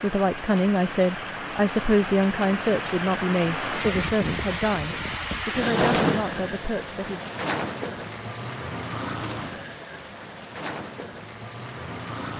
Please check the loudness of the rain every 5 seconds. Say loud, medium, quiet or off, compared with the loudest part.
loud, loud, medium.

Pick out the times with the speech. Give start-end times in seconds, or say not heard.
0.0-7.2.